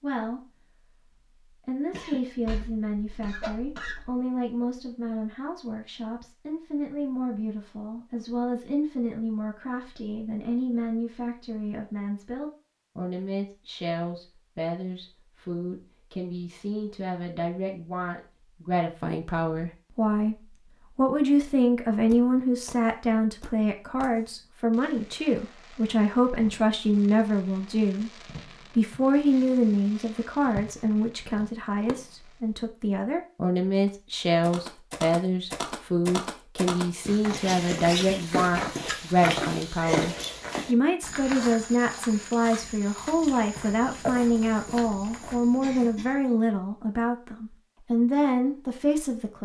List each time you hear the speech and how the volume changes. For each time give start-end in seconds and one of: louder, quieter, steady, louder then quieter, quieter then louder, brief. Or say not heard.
0.0-0.5 brief
1.6-49.4 louder.